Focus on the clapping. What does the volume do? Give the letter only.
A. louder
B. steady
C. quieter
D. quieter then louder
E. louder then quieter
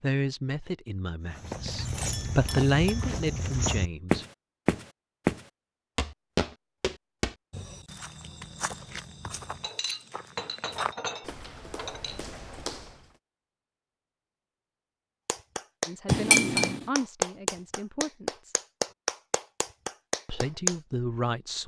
C.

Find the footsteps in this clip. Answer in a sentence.
The footsteps can be heard from 1.3 to 13.1 s.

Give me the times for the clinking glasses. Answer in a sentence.
The clinking glasses can be heard from 2.1 to 3.1 s, from 9.6 to 12.2 s and from 16.1 to 16.9 s.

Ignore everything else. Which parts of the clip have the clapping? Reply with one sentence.
You can hear the clapping from 15.2 to 20.8 s.